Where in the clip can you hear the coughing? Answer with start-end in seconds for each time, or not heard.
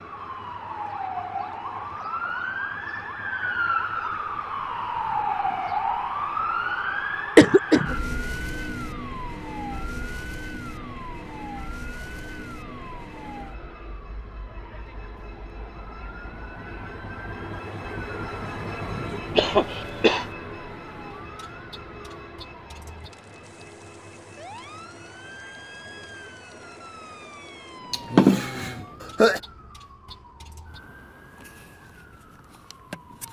7.3-8.0, 19.4-20.2, 27.9-29.4.